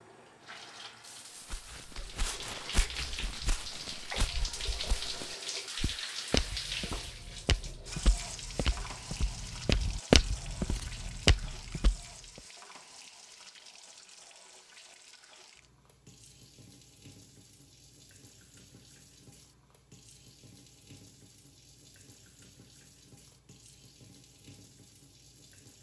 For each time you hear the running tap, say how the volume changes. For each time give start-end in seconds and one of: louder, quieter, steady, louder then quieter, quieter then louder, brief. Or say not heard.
0.0-25.7 quieter.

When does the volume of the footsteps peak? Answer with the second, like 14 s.
10 s.